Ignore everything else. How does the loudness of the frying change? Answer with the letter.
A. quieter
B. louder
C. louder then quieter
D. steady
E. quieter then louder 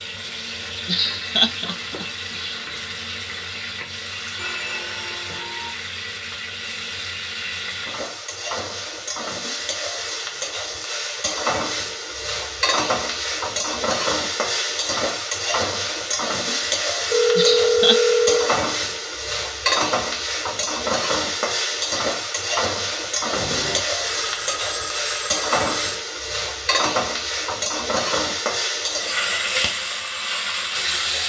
B.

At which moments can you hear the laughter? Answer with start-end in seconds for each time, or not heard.
0.8-2.7, 17.4-18.0.